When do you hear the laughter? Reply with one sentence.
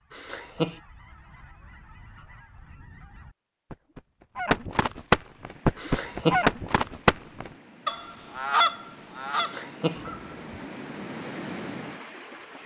You can hear the laughter from 0.1 to 0.8 s, from 5.8 to 6.5 s and from 9.3 to 10.1 s.